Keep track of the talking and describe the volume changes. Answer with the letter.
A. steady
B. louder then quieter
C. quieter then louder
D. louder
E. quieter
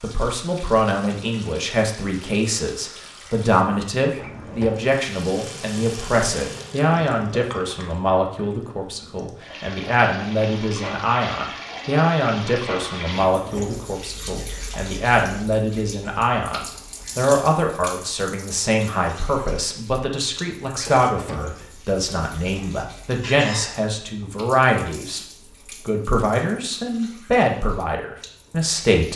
A.